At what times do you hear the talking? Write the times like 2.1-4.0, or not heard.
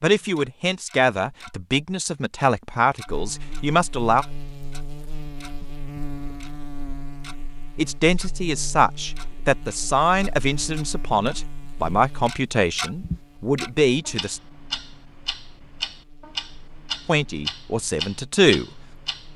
0.0-4.2, 7.8-14.4, 17.1-18.7.